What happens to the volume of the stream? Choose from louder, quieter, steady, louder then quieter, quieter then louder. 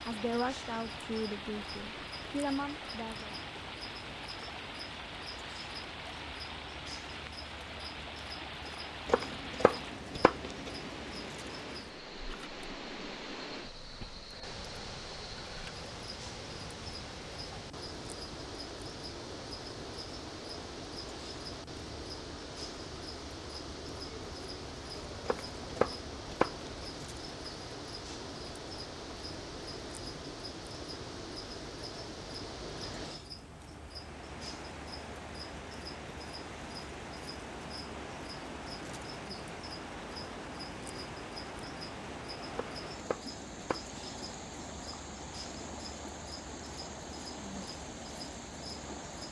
steady.